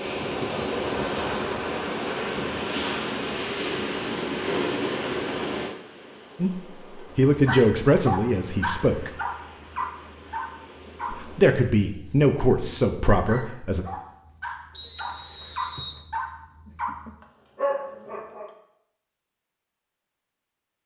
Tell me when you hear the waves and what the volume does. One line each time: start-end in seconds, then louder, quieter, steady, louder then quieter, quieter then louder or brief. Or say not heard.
0.0-11.5 quieter.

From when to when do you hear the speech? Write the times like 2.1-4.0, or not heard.
6.3-9.1, 11.1-13.8.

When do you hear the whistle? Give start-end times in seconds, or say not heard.
14.8-16.1.